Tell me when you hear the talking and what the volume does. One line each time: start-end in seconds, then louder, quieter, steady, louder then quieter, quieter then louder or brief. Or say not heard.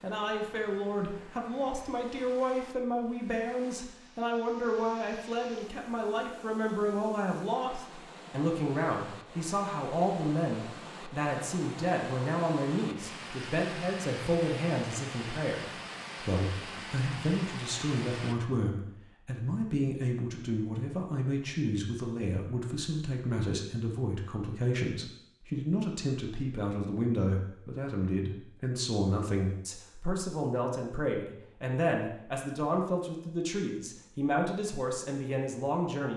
0.0-36.1 steady.